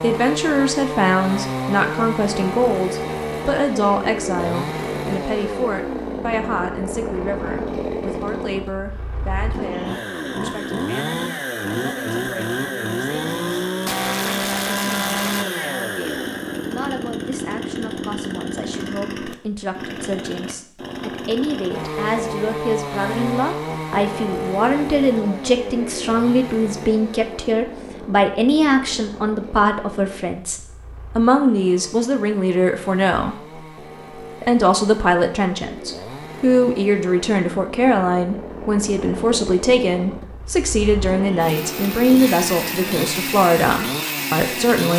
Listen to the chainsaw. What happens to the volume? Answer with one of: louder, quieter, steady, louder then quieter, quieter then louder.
quieter then louder.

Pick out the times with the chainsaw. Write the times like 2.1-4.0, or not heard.
0.0-44.9.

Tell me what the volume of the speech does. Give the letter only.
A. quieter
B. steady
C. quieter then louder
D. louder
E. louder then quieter
C.